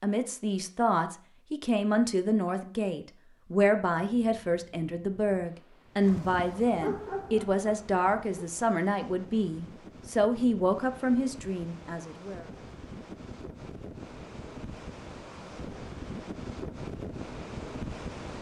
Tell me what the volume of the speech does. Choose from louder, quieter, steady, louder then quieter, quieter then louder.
steady.